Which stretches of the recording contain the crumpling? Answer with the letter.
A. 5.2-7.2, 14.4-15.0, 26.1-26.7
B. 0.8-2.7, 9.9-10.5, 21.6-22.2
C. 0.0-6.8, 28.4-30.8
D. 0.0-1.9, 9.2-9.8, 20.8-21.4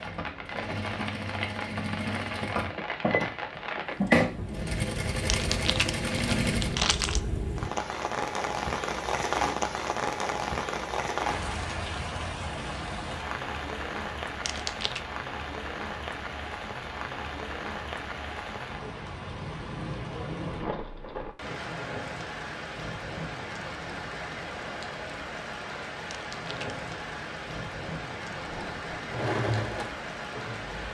A.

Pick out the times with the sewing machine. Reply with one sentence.
The sewing machine can be heard from 0.0 to 6.8 s and from 28.4 to 30.8 s.